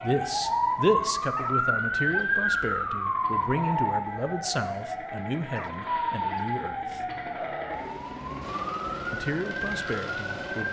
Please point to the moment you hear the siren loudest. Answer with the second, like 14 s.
2 s.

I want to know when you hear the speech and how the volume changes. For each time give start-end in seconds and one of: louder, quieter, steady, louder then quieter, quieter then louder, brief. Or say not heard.
0.0-7.0 quieter
9.1-10.6 brief.